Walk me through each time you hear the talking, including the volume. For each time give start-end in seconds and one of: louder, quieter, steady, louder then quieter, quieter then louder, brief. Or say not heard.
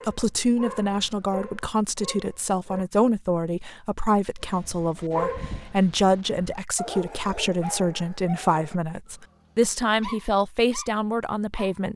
0.1-11.9 steady.